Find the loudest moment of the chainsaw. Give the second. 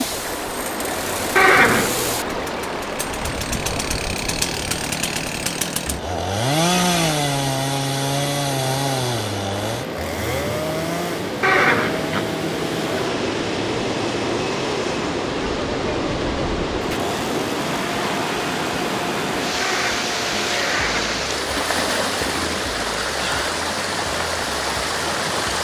7 s.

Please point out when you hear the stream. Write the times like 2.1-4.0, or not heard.
0.0-25.5.